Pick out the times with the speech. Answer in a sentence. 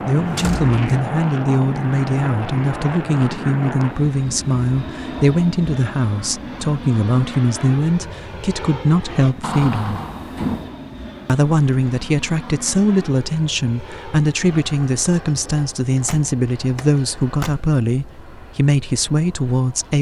You can hear the speech from 0.1 to 9.9 s and from 11.2 to 19.9 s.